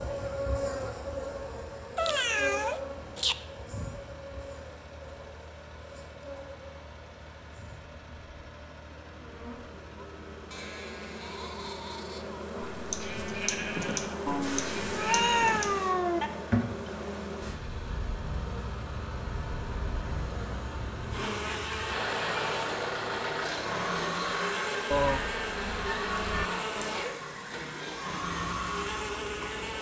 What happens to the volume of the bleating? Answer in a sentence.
The loudness of the bleating goes up.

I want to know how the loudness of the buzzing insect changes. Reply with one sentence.
The loudness of the buzzing insect goes down, then up.